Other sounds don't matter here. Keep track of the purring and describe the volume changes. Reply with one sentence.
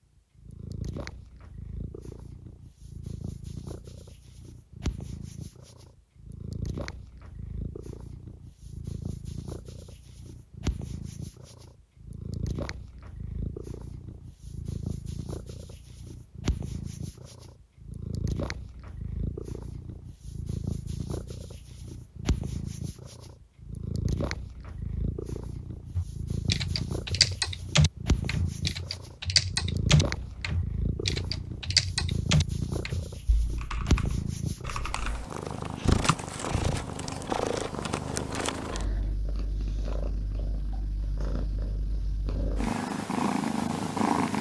The volume of the purring goes up.